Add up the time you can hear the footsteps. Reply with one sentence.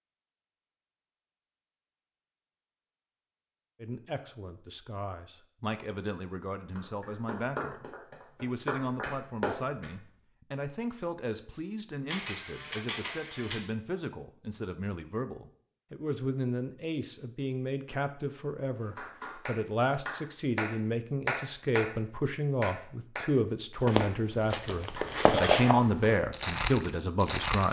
The footsteps can be heard for 4 seconds in total.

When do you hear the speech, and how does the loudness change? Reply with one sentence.
You can hear the speech from 3.8 to 27.6 s, getting louder.